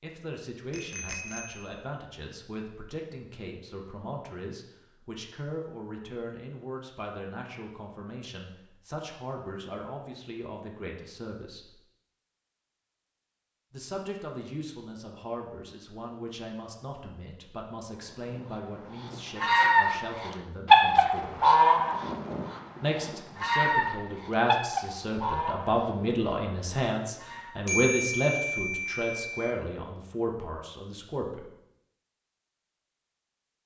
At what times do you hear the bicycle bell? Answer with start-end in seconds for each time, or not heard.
0.7-1.8, 27.6-29.6.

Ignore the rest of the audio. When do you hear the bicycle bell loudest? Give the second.
28 s.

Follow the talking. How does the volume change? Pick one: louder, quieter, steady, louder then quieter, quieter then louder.
louder.